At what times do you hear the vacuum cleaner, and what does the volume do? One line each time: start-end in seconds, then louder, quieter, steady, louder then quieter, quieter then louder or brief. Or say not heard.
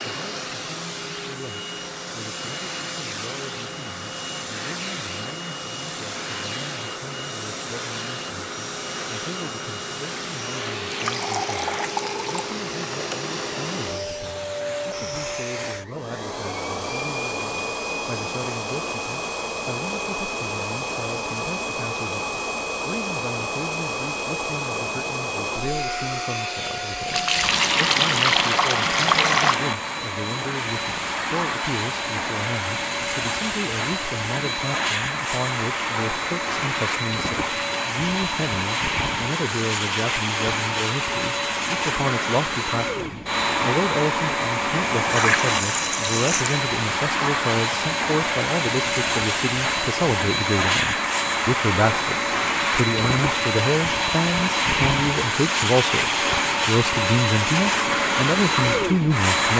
0.0-59.5 louder.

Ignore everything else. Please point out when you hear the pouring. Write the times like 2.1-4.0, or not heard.
10.9-12.6, 27.1-29.6, 45.1-46.6.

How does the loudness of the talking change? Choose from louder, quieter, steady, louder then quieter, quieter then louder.
louder.